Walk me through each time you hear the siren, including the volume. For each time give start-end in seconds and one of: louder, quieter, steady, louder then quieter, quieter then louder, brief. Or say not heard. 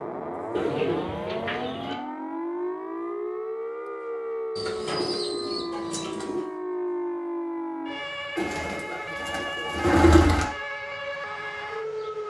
0.0-12.2 steady.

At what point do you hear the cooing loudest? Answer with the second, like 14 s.
10 s.